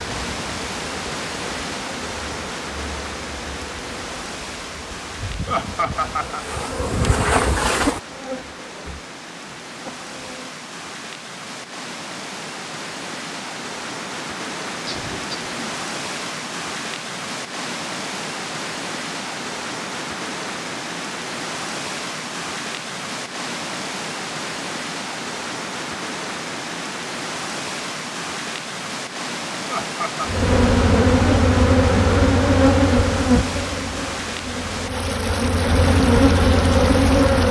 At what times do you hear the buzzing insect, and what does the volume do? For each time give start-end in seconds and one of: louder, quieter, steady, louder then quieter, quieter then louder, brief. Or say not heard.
0.0-10.6 louder then quieter
30.2-37.4 quieter then louder.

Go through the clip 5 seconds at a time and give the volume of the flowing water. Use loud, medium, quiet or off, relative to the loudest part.
loud, medium, loud, loud, loud, loud, loud, loud.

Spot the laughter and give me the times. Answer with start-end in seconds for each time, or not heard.
5.5-6.5, 14.8-15.6, 29.6-30.4.